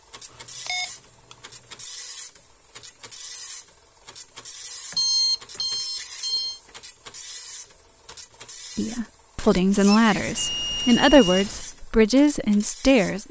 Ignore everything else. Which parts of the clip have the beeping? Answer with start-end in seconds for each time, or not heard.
0.7-1.8, 4.9-6.6, 10.3-11.7.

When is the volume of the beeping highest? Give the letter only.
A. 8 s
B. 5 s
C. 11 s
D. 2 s
B.